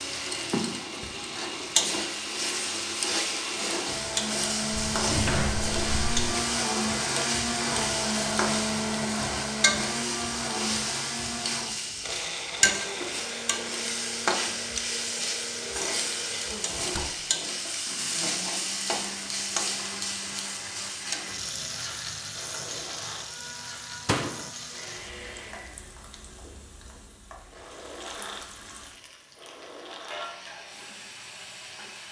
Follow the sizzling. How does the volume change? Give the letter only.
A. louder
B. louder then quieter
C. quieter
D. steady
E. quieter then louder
C.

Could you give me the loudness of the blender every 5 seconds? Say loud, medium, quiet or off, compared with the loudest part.
medium, loud, medium, medium, quiet, quiet, quiet.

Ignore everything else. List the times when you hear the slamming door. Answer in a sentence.
The slamming door can be heard from 4.7 to 6.3 s, from 16.8 to 17.2 s and from 24.1 to 24.5 s.